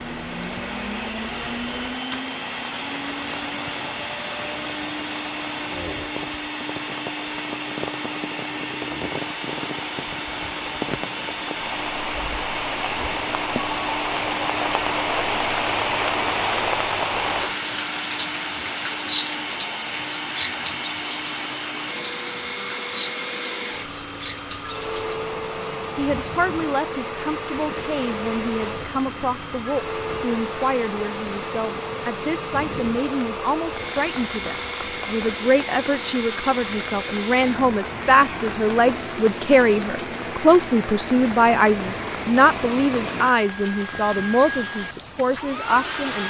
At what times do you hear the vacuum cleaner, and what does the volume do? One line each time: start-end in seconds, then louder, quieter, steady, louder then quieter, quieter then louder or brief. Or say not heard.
0.0-46.2 steady.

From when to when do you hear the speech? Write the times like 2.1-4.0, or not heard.
25.9-46.2.